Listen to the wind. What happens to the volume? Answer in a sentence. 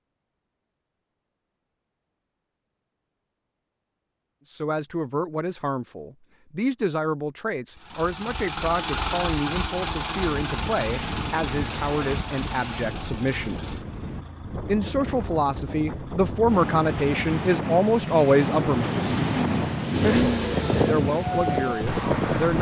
The loudness of the wind goes up.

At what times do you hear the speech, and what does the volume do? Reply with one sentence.
The speech can be heard from 4.5 to 13.7 s, at a steady volume; from 14.7 to 19.1 s, getting louder; and briefly from 20.0 to 22.5 s.